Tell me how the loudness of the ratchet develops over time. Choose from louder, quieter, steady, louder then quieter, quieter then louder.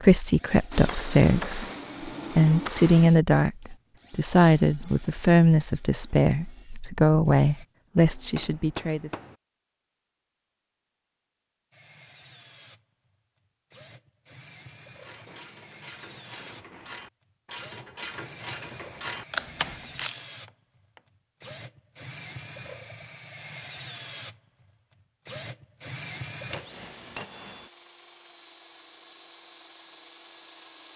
louder.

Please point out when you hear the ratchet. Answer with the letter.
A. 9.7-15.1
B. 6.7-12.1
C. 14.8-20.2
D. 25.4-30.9
C.